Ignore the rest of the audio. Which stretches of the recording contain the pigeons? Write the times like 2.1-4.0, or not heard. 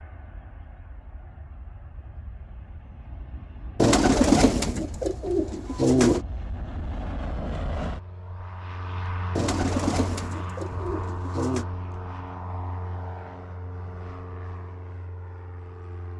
3.8-6.2, 9.3-11.7.